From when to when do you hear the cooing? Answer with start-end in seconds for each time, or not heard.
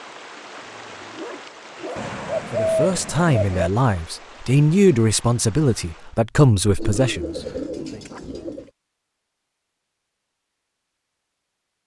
1.9-3.7, 6.8-8.7.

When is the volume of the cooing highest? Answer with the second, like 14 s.
3 s.